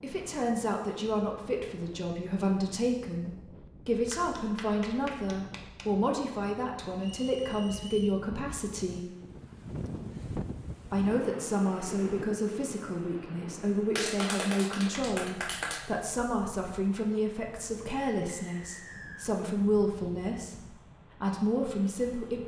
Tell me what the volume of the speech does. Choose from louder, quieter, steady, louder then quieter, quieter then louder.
steady.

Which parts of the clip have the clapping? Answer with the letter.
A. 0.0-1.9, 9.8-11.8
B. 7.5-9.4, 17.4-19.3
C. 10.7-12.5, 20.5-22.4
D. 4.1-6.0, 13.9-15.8
D.